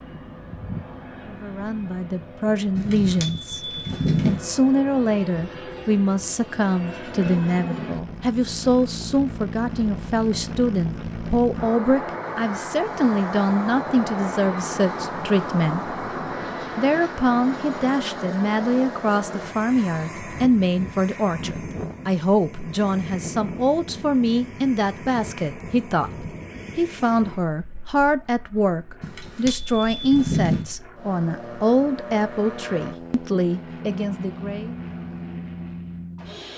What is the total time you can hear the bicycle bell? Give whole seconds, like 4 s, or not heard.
3 s.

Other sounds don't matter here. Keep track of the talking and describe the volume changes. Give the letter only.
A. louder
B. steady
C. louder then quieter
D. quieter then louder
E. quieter
B.